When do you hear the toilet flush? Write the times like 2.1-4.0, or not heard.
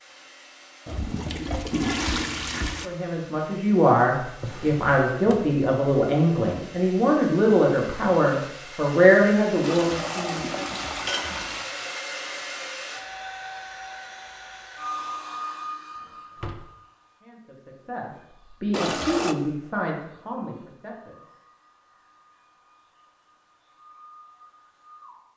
0.8-2.9, 9.6-11.7, 18.7-19.4.